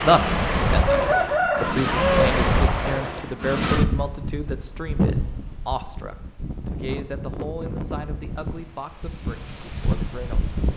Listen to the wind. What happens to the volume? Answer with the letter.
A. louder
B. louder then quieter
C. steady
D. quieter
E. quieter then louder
D.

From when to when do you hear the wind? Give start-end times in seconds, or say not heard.
0.0-10.7.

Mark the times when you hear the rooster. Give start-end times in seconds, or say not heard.
0.8-2.3.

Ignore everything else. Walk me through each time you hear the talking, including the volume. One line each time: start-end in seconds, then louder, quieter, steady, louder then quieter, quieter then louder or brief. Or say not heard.
0.0-10.6 quieter.